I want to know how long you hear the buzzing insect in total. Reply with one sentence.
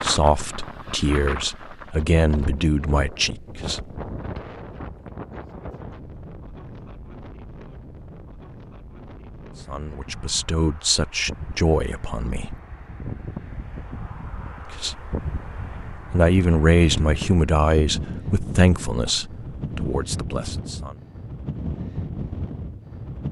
You can't hear the buzzing insect here.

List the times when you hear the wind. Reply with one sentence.
The wind can be heard from 0.0 to 23.2 s.